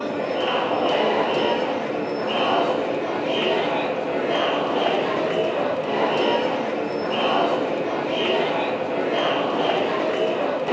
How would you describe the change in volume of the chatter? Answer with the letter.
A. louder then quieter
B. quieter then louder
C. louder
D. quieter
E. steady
E.